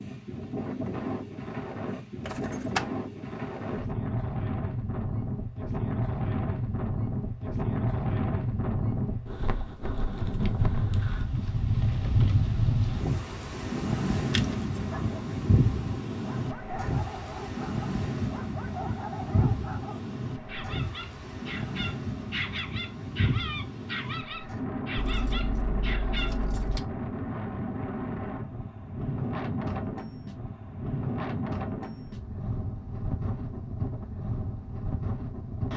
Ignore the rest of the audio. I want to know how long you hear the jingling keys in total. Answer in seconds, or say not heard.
3 s.